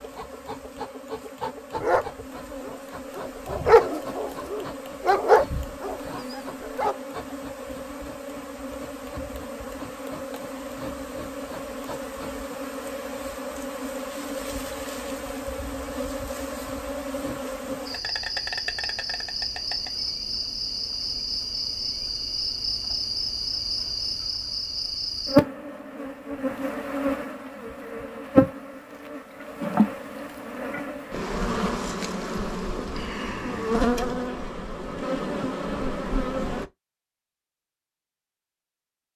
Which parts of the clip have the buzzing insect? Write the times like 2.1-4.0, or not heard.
0.0-36.7.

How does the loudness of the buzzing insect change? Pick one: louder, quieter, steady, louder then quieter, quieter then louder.
louder.